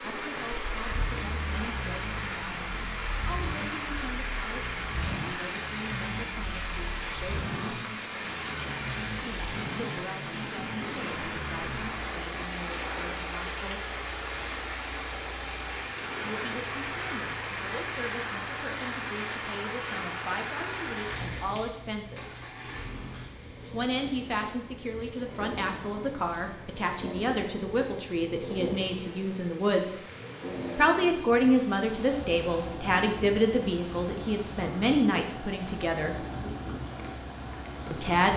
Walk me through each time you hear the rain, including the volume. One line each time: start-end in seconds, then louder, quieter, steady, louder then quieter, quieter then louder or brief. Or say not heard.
0.0-38.1 quieter.